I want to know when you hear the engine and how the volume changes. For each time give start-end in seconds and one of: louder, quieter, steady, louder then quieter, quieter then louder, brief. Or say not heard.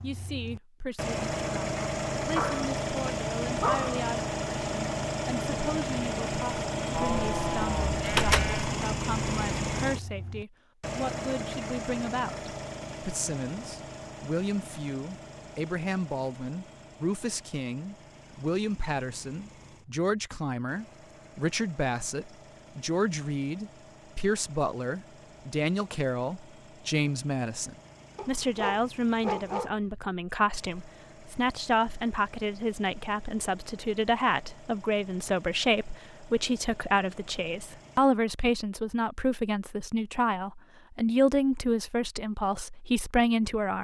0.0-38.0 quieter.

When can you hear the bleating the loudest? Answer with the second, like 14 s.
8 s.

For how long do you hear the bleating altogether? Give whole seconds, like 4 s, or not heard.
2 s.